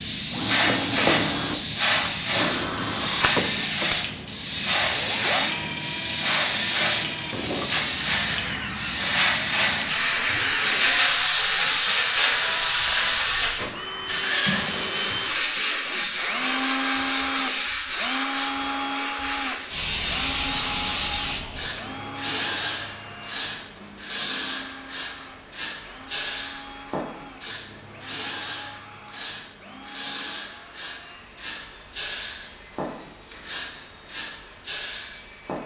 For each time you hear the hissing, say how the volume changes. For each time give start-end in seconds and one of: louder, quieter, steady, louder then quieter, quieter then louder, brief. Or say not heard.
0.0-35.6 quieter.